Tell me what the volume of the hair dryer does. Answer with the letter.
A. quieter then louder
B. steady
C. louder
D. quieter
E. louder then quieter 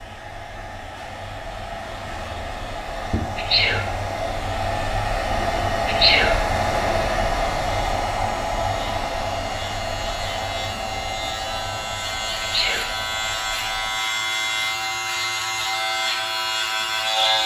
E.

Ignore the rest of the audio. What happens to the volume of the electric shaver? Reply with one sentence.
The loudness of the electric shaver goes up.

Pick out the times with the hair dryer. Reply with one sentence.
You can hear the hair dryer from 0.0 to 17.4 s.